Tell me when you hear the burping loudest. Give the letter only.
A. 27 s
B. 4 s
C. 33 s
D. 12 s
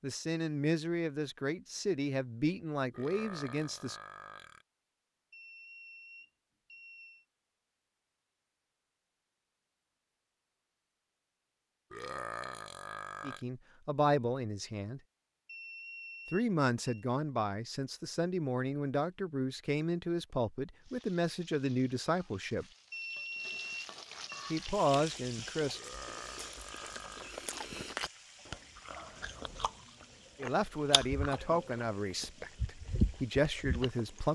D.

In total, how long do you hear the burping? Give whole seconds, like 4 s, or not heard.
5 s.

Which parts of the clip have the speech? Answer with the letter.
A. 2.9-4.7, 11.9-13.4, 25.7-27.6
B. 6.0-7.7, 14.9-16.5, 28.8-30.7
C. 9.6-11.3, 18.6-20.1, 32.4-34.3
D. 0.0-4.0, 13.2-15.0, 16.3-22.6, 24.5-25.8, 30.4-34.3
D.